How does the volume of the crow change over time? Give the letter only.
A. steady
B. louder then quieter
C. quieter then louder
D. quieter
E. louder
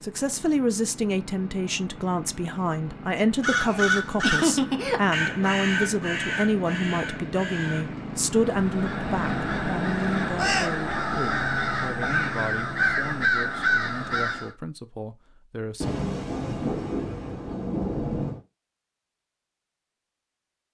C.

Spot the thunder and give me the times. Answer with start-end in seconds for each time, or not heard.
15.8-18.4.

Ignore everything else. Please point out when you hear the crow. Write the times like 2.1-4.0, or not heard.
3.4-14.6.